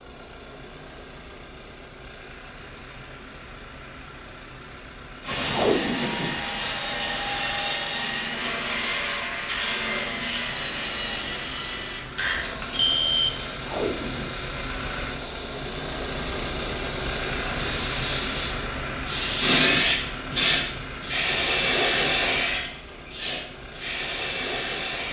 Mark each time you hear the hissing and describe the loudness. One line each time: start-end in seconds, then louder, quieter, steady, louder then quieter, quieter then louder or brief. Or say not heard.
6.5-25.0 louder.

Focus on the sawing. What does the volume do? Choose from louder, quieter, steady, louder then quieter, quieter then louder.
steady.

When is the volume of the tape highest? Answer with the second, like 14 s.
6 s.